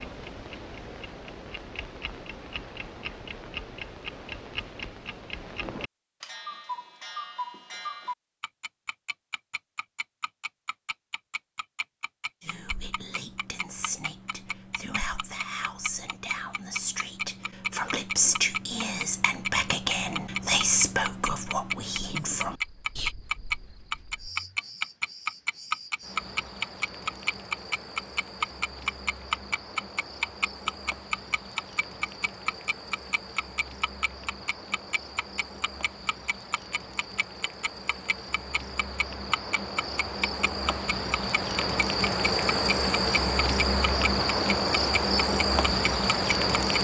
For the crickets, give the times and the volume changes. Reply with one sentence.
The crickets can be heard from 22.4 to 46.7 s, getting louder.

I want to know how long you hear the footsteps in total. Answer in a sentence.
You can't hear the footsteps here.